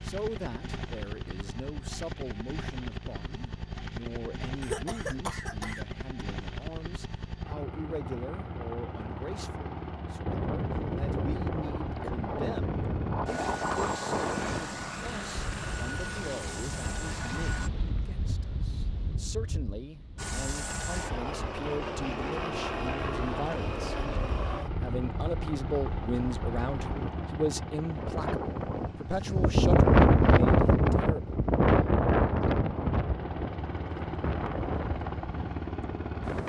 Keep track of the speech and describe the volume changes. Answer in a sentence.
The loudness of the speech goes up.